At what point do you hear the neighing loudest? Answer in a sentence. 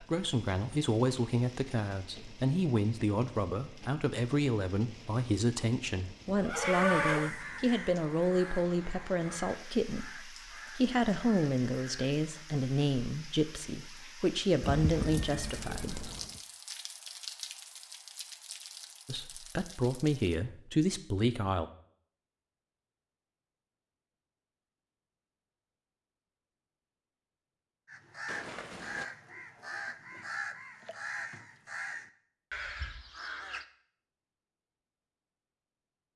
The loudest moment of the neighing is at 7 seconds.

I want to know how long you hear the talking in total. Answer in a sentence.
You can hear the talking for 19 seconds altogether.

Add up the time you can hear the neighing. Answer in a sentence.
You can hear the neighing for 4 seconds altogether.